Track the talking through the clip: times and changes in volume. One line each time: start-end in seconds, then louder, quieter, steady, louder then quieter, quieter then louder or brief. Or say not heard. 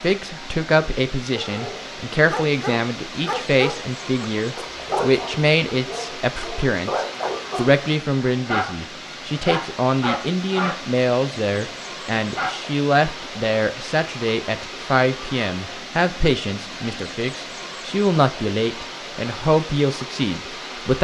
0.0-20.9 steady.